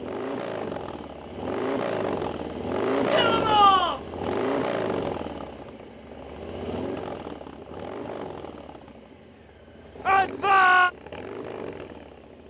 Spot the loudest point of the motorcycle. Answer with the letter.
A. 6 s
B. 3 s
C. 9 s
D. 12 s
B.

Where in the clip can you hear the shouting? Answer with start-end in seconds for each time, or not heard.
3.1-4.0, 10.1-10.9.